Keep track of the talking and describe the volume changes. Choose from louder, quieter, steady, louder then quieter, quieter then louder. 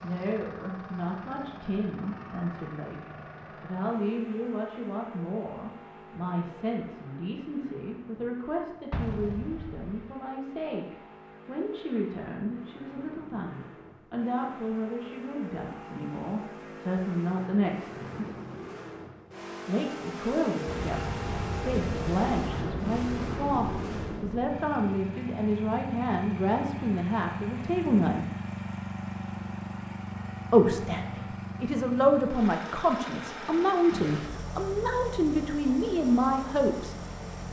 louder.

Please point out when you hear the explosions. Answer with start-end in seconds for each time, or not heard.
8.9-9.8, 20.6-24.6.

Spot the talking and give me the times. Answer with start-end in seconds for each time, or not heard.
0.0-18.4, 19.6-28.2, 30.5-37.0.